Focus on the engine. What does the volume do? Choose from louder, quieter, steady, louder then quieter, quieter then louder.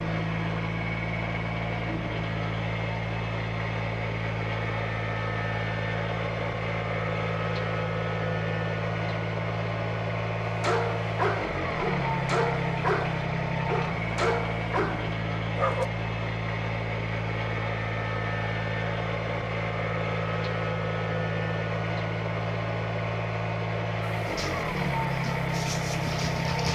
steady.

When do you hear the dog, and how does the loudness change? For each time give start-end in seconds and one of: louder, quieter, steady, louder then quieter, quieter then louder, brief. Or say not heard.
10.4-15.8 steady
24.1-26.7 brief.